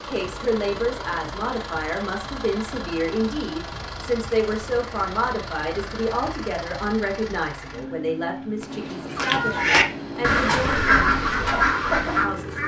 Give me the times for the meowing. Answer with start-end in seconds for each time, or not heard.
8.6-10.4.